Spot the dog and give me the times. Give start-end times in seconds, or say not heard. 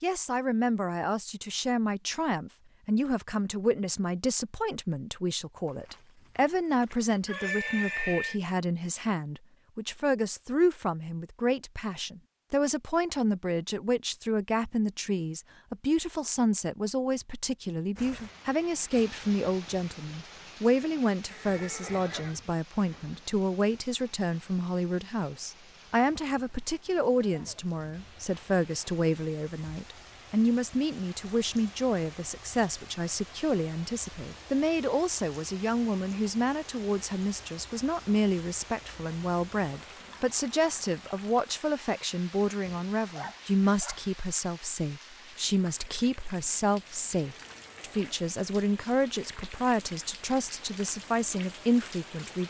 42.5-44.0.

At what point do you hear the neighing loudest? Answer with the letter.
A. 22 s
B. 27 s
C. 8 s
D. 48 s
C.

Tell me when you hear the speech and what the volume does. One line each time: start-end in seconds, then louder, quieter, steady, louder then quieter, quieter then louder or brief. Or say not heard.
0.0-52.4 steady.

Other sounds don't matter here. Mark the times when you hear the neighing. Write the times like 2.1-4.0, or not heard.
5.7-8.4, 21.2-22.4, 47.3-48.1.